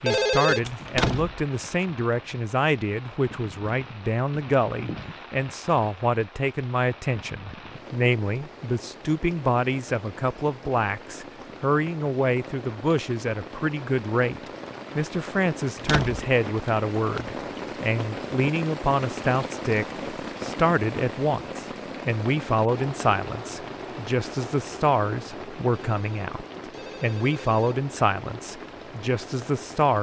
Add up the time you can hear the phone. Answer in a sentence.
You can hear the phone for 3 seconds altogether.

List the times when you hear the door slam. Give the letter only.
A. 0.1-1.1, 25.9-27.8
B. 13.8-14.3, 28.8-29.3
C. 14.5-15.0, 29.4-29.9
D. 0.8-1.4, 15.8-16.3
D.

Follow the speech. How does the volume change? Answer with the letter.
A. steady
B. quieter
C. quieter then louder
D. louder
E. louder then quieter
A.